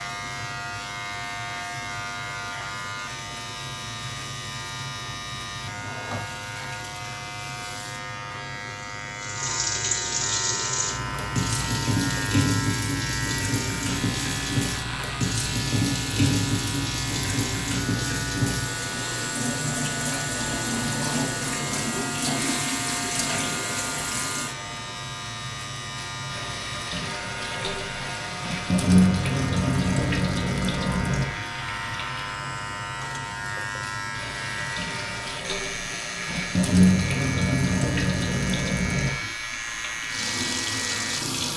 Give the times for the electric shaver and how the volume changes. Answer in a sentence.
The electric shaver can be heard from 0.0 to 41.5 s, at a steady volume.